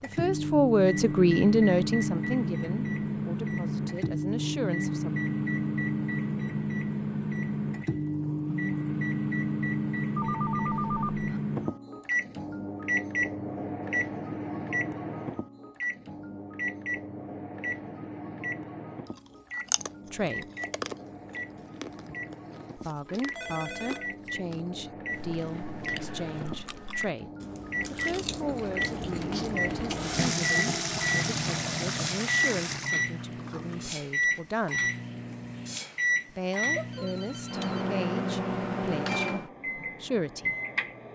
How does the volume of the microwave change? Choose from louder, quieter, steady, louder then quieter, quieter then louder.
quieter then louder.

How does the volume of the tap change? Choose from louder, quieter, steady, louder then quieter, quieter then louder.
louder then quieter.